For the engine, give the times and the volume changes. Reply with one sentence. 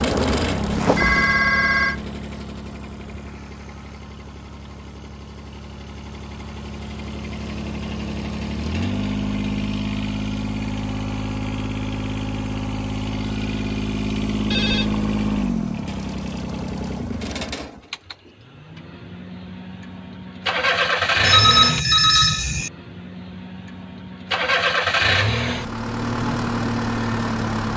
You can hear the engine from 0.0 to 27.7 s, getting louder.